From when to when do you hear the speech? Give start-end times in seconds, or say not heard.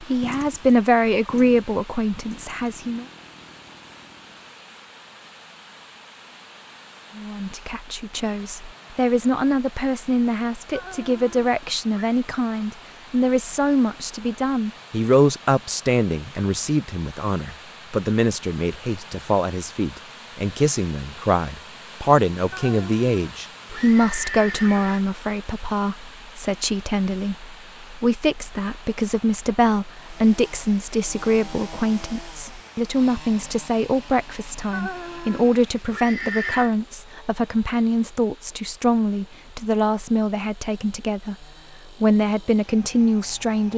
0.0-3.0, 7.2-43.7.